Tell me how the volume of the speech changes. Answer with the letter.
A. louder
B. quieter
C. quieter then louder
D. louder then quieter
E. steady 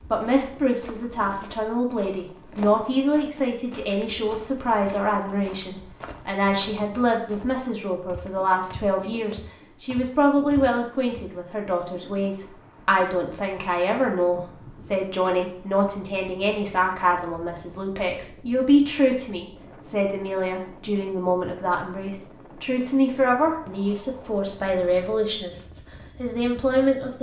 E.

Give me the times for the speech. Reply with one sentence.
The speech can be heard from 0.1 to 27.1 s.